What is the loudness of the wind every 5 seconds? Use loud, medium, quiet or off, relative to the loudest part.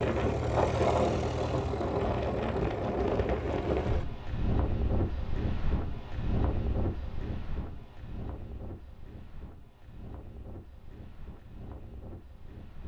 loud, medium, quiet.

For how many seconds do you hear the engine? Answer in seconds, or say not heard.
4 s.